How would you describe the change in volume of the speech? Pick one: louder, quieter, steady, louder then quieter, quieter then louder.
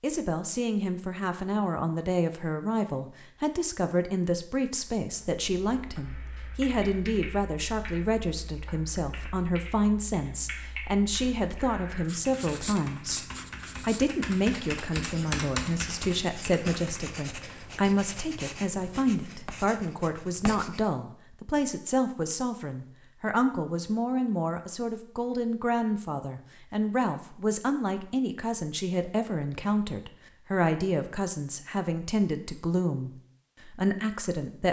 steady.